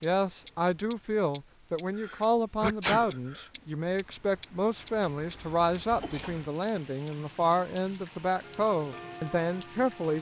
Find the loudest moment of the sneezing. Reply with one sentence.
The volume of the sneezing peaks at 3 seconds.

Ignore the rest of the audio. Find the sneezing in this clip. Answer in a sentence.
You can hear the sneezing from 1.9 to 3.5 s and from 5.9 to 6.3 s.